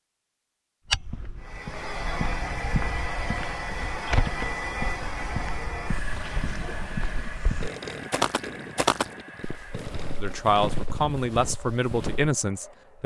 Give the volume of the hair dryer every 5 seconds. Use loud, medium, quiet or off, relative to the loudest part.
loud, medium, quiet.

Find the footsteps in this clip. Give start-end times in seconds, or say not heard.
0.8-12.3.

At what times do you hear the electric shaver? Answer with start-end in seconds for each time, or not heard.
not heard.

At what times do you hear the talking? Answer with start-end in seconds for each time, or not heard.
10.2-13.0.